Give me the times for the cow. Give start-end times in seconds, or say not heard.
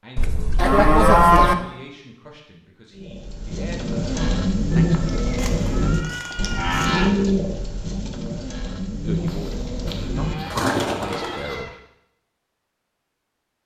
0.6-1.6, 5.2-7.1, 9.2-11.7.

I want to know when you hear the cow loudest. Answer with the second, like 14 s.
1 s.